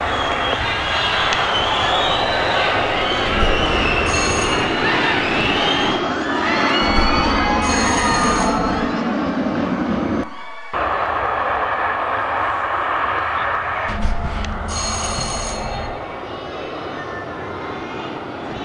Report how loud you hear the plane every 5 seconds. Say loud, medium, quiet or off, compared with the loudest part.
loud, loud, loud, medium.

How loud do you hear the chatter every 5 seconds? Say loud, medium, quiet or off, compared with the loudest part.
loud, loud, quiet, quiet.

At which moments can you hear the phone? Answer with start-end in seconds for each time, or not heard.
3.2-4.7, 6.8-8.8, 13.8-15.9.